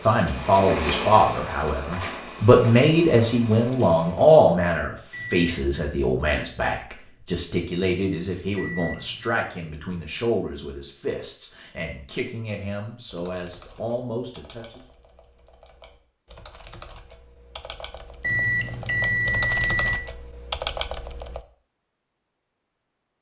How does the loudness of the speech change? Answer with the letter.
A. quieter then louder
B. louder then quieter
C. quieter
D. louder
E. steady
C.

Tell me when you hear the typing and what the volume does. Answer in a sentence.
The typing can be heard from 13.1 to 21.4 s, getting louder.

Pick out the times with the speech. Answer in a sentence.
You can hear the speech from 0.0 to 14.8 s.